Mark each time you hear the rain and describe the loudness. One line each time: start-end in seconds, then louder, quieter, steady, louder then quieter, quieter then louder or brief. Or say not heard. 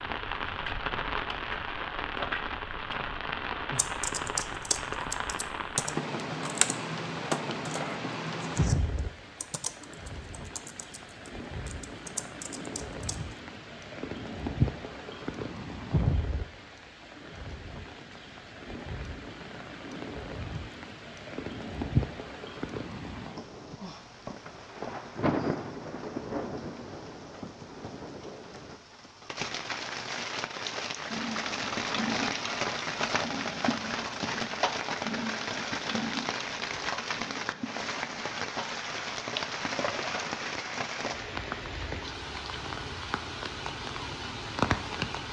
0.0-45.2 steady.